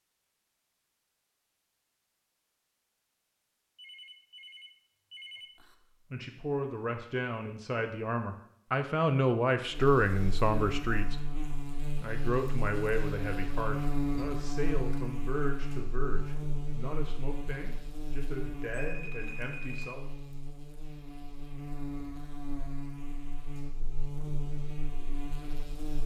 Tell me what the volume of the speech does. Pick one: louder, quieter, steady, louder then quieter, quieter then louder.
louder then quieter.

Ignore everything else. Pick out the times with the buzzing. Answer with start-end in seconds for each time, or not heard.
9.7-26.0.